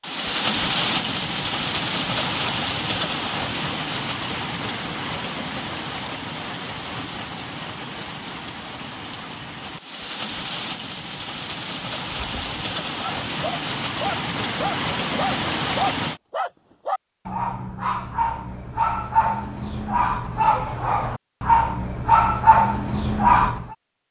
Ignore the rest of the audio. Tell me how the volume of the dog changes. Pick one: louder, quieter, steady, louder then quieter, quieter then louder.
louder.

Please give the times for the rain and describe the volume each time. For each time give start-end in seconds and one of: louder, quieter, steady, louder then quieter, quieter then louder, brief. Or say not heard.
0.0-16.2 quieter then louder.